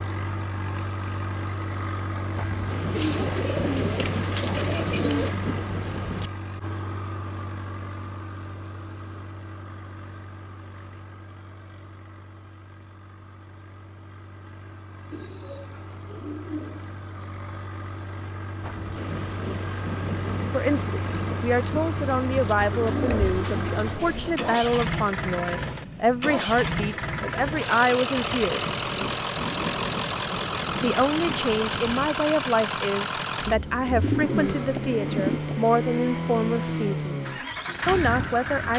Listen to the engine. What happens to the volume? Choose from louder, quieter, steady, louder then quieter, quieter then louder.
quieter then louder.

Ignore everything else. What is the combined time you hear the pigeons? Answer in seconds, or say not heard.
8 s.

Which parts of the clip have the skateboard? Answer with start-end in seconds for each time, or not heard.
not heard.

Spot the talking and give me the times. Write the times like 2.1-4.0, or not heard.
20.5-28.8, 30.8-38.7.